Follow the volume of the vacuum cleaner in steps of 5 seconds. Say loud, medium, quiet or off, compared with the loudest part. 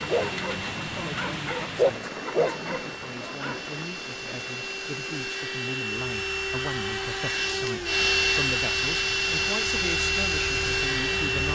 quiet, loud, loud.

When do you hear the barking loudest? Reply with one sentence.
The loudest moment of the barking is at 2 seconds.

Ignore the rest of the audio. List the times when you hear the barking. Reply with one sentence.
The barking can be heard from 0.0 to 3.6 s.